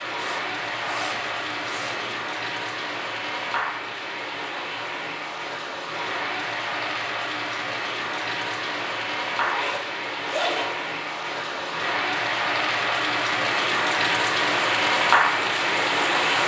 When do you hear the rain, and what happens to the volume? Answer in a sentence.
You can hear the rain from 0.0 to 16.4 s, getting louder.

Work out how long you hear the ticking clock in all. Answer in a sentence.
The ticking clock can't be heard in this clip.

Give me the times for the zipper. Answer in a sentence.
The zipper can be heard from 0.1 to 2.1 s and from 9.3 to 10.8 s.